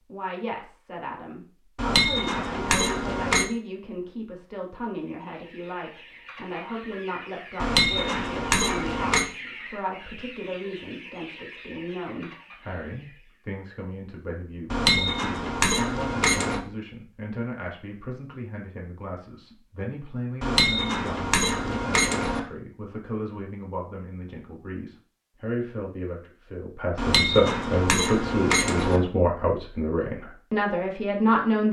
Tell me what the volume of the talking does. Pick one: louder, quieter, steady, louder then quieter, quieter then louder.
louder.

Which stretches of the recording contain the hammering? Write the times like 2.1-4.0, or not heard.
1.8-3.5, 7.6-9.2, 14.7-16.6, 20.4-22.4, 26.9-29.0.